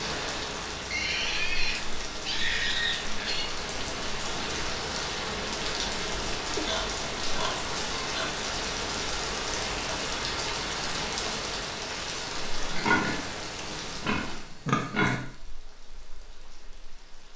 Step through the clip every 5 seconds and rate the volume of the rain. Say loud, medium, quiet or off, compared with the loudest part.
loud, loud, loud, quiet.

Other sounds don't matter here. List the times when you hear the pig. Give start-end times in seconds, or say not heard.
0.9-3.5, 6.5-8.4, 12.7-15.2.